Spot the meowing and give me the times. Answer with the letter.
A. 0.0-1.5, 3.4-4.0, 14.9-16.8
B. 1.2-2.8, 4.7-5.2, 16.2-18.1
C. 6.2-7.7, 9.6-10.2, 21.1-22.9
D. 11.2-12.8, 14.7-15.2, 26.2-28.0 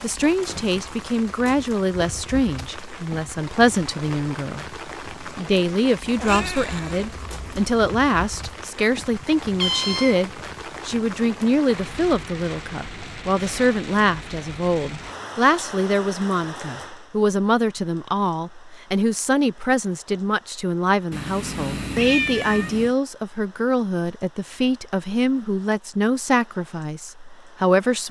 C.